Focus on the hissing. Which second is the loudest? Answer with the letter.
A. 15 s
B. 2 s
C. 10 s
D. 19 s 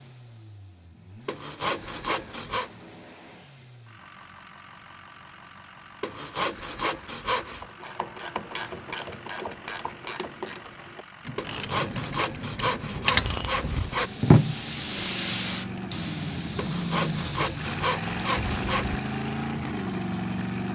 A.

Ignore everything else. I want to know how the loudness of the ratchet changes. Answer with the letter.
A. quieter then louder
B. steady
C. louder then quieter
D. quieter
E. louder
E.